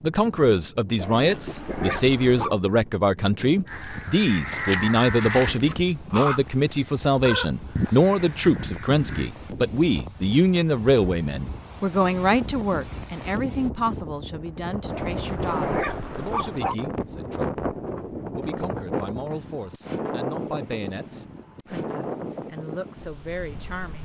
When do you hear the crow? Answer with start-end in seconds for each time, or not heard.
3.6-9.3.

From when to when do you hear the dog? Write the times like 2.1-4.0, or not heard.
0.9-2.5, 14.9-16.8.